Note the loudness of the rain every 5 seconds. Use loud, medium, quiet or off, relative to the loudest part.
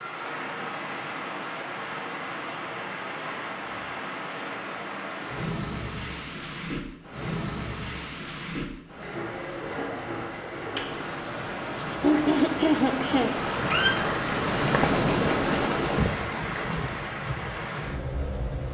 medium, medium, loud, loud.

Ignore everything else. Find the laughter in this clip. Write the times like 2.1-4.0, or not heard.
12.0-13.3.